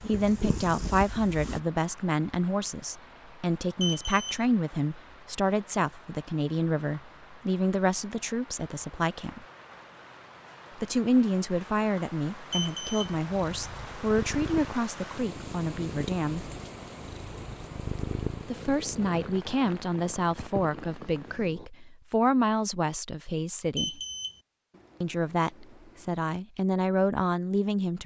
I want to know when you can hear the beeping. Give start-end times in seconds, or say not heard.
3.8-4.5, 12.5-13.2, 23.8-24.4.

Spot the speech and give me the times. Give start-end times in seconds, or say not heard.
0.1-9.4, 10.8-16.5, 18.4-24.0, 25.0-28.0.